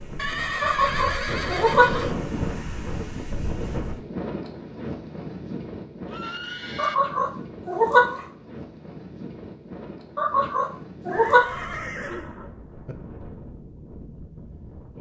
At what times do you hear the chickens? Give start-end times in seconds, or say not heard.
0.6-2.0, 6.8-8.2, 10.2-11.8.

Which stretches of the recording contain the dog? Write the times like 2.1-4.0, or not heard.
not heard.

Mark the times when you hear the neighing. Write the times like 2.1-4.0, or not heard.
0.1-2.2, 6.0-7.0, 11.1-12.9.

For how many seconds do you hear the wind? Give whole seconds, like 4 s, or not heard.
15 s.